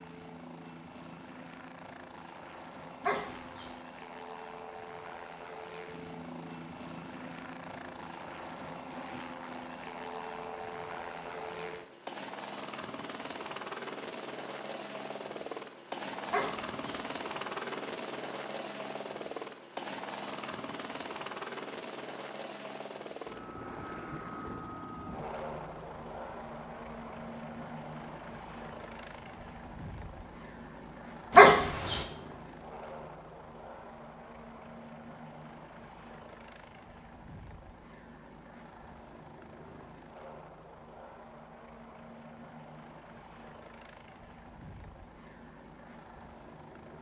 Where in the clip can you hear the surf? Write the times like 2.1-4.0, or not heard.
not heard.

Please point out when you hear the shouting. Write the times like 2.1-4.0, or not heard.
not heard.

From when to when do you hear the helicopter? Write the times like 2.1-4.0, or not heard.
0.0-46.9.